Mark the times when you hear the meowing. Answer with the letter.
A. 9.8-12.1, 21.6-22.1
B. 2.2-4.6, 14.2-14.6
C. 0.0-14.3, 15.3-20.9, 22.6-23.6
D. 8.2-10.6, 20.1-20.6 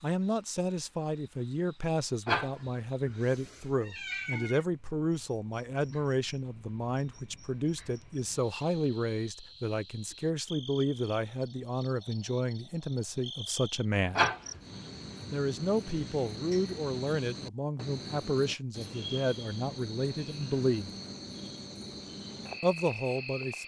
B.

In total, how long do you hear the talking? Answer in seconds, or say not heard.
21 s.